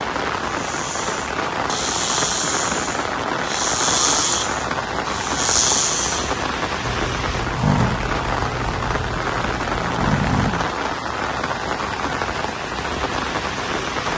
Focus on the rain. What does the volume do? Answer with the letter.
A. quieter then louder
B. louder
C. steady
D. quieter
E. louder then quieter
C.